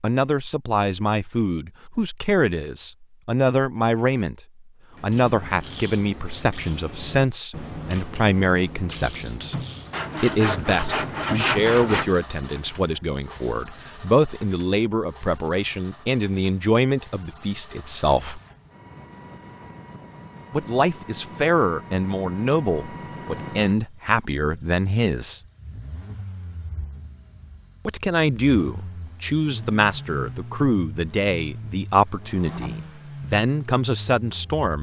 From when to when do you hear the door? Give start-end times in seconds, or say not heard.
not heard.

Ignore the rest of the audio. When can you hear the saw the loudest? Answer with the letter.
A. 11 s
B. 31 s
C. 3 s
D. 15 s
A.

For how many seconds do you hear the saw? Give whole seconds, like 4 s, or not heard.
2 s.